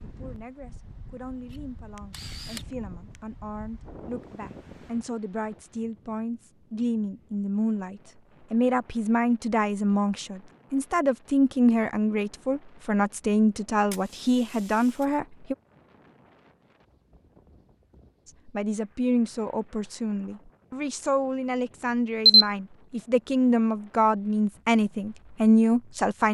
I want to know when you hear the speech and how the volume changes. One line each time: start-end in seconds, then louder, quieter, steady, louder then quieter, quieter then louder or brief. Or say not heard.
0.0-15.6 louder
18.2-26.3 louder.